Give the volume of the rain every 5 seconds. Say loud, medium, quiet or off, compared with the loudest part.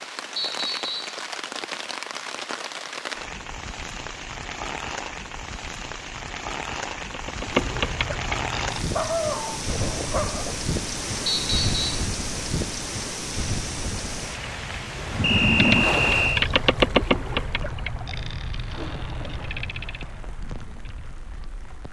loud, loud, loud, medium, quiet.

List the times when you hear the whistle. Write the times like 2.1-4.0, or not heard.
0.3-1.2, 11.2-11.9, 15.2-16.3.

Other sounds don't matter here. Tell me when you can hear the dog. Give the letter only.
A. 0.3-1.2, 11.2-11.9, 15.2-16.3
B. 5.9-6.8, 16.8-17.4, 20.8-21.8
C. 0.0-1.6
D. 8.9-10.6
D.